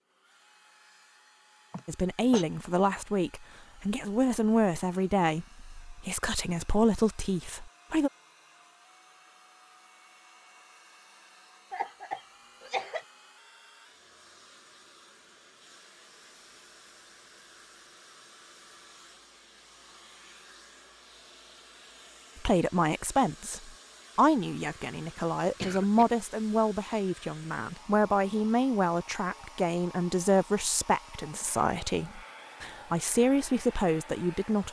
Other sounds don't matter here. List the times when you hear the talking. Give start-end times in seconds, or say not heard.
1.9-8.1, 22.4-34.6.